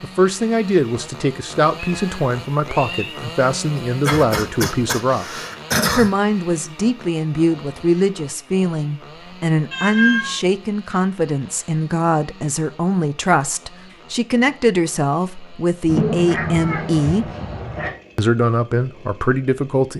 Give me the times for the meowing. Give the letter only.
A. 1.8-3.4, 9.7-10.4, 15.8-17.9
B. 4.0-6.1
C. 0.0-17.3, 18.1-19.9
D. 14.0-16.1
A.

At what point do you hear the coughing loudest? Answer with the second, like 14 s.
6 s.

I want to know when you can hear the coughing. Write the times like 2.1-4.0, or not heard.
4.0-6.1.